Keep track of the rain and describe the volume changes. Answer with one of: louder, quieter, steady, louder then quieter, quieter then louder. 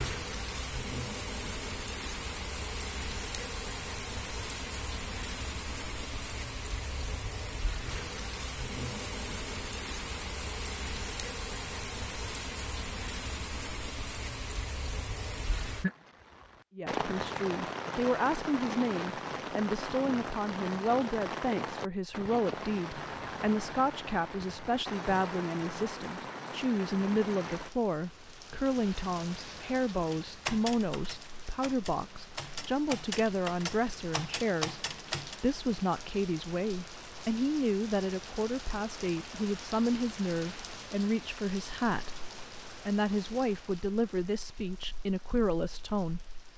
quieter.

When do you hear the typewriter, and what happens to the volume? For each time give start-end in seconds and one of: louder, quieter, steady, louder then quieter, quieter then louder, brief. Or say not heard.
30.1-35.4 quieter then louder.